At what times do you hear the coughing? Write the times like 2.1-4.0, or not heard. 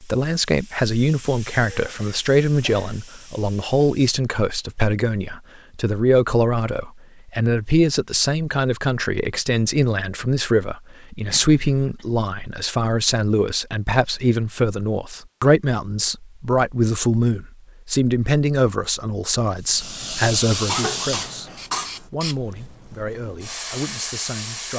1.6-3.0, 11.3-12.1, 20.6-22.1.